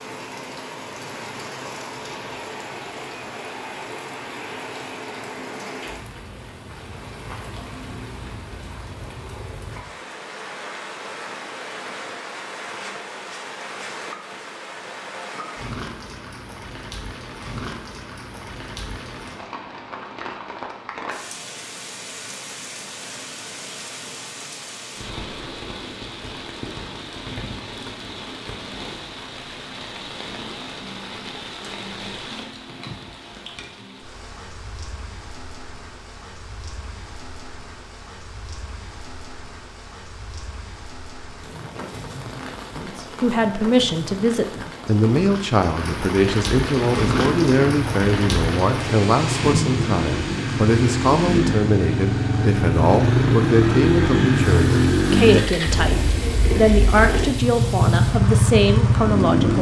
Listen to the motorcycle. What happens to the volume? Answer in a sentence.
The loudness of the motorcycle goes up.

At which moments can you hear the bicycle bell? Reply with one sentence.
You can't hear the bicycle bell here.